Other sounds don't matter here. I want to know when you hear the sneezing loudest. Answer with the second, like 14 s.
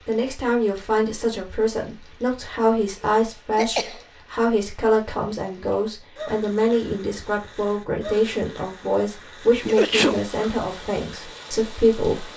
10 s.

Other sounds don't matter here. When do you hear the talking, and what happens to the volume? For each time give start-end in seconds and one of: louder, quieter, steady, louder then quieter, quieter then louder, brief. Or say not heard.
0.1-12.3 steady.